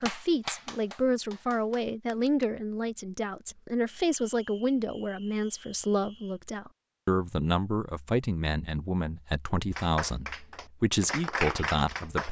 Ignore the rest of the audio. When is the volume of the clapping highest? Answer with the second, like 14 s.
12 s.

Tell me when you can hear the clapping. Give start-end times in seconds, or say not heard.
0.0-2.5, 9.8-12.2.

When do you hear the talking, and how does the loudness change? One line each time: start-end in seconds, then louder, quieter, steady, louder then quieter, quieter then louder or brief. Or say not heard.
0.0-12.2 steady.